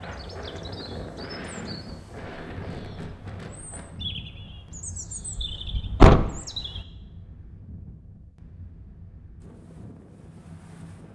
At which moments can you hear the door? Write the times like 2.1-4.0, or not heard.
5.3-6.3.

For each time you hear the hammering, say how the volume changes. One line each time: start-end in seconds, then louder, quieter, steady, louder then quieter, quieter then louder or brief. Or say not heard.
not heard.